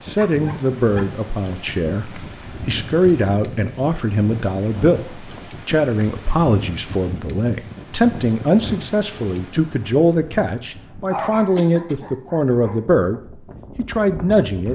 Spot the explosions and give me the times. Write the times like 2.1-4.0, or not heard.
not heard.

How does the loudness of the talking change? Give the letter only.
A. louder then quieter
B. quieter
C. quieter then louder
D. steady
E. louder
D.